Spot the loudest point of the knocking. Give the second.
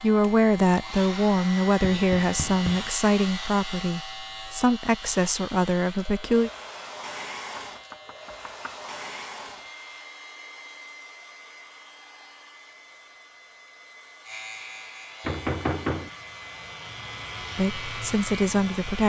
16 s.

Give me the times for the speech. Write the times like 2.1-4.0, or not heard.
0.0-6.5, 17.6-19.0.